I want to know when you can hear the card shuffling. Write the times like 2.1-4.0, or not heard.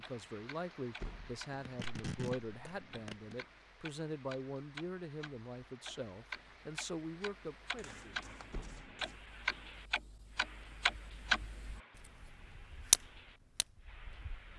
1.6-3.4, 7.8-9.2.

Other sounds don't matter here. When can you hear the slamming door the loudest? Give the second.
1 s.